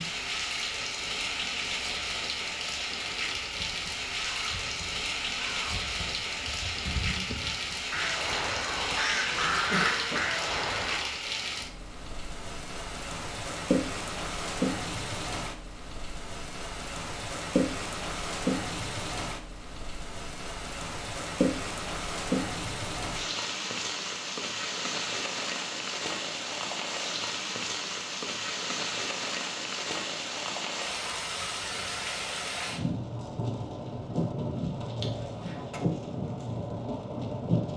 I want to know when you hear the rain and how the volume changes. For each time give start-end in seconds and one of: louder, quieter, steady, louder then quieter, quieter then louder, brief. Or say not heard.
0.0-37.7 steady.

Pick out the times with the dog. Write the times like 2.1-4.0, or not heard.
not heard.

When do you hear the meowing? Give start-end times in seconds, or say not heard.
not heard.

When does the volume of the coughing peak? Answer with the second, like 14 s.
10 s.